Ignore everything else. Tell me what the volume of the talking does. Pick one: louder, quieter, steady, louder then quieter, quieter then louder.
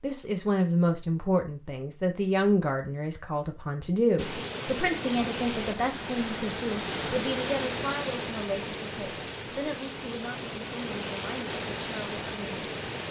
quieter.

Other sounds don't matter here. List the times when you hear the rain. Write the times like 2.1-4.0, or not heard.
4.2-13.0.